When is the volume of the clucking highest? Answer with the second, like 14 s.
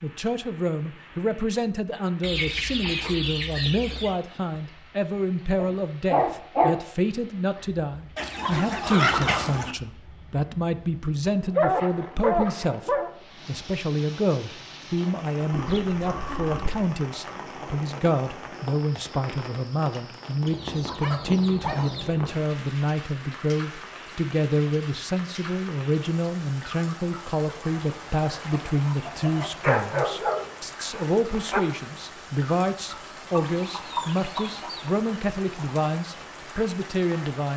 9 s.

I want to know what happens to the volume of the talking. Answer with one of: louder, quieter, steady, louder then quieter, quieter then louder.
steady.